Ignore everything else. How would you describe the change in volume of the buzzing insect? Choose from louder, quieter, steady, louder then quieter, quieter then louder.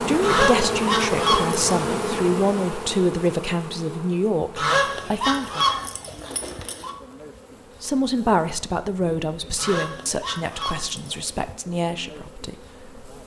quieter.